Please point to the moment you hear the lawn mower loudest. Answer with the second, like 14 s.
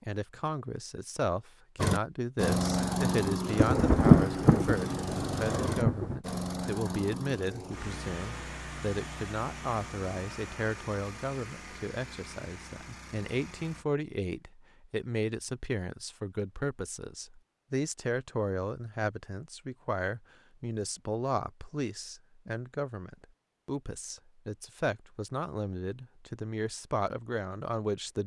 3 s.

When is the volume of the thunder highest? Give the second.
4 s.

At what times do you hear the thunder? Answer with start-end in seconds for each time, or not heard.
3.5-6.2.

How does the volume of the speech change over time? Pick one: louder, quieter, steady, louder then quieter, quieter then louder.
steady.